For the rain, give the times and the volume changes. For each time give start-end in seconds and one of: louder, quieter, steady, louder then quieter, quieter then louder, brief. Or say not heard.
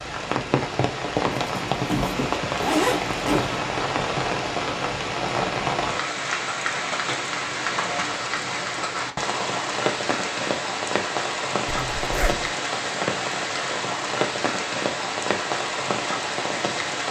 0.0-17.0 steady.